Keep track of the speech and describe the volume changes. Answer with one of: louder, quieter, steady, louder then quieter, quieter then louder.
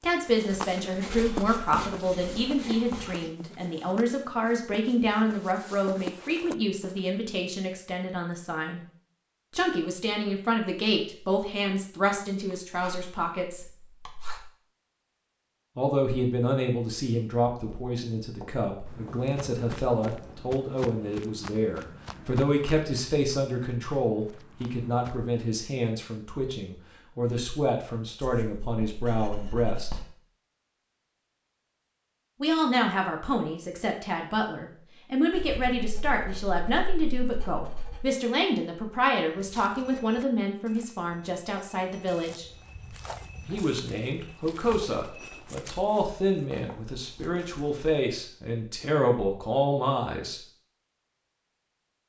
steady.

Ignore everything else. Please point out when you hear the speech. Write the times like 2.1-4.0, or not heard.
0.0-8.8, 9.5-13.7, 15.8-29.9, 32.4-42.5, 43.5-50.4.